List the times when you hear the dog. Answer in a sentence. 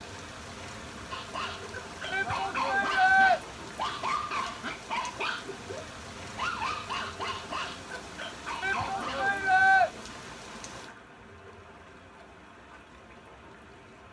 The dog can be heard from 1.1 to 9.3 s.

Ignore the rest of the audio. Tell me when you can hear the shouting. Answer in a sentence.
You can hear the shouting from 2.1 to 3.4 s and from 8.6 to 9.9 s.